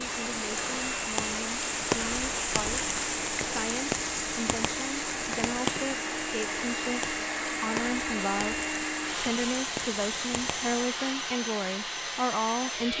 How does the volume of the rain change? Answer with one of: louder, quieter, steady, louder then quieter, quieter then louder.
quieter.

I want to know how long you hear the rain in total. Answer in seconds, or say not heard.
11 s.